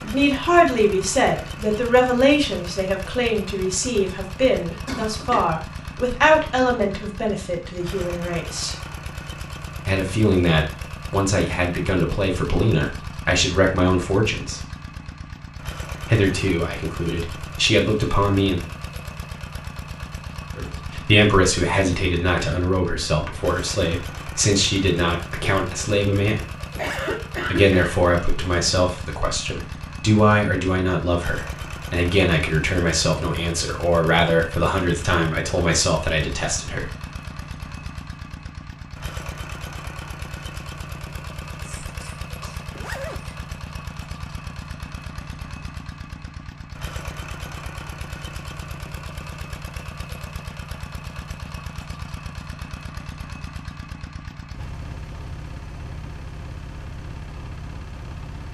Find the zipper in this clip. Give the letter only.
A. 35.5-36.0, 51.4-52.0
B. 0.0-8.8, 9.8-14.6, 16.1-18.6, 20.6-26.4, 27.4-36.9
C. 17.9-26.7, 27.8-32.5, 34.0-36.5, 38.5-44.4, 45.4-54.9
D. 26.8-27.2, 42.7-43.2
D.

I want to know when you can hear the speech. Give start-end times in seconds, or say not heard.
0.0-8.8, 9.8-14.6, 16.1-18.6, 20.6-26.4, 27.4-36.9.